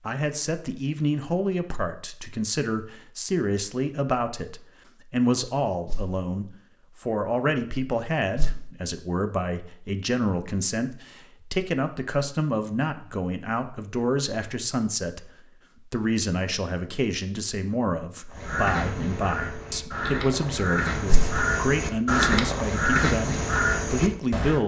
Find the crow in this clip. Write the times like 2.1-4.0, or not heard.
18.3-24.6.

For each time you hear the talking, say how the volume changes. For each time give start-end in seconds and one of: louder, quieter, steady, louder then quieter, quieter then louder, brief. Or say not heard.
0.1-24.6 steady.